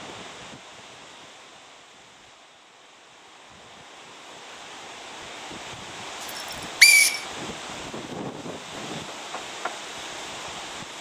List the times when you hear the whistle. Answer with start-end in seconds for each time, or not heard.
6.3-7.2.